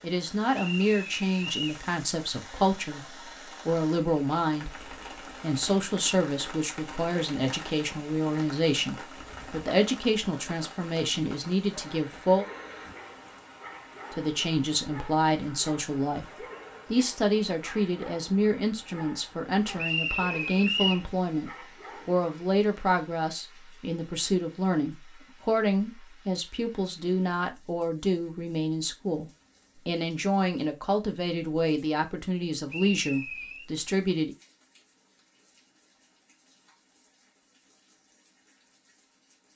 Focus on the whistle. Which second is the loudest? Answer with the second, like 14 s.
21 s.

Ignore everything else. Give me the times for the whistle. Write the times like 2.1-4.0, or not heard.
0.5-1.8, 19.8-21.1, 32.6-33.6.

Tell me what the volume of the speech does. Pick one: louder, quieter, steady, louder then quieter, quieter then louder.
steady.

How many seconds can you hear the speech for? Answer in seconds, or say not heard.
33 s.